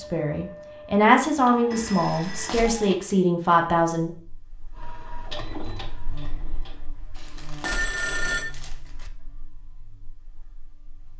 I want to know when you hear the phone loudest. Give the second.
8 s.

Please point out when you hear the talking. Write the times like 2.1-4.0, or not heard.
0.0-4.1.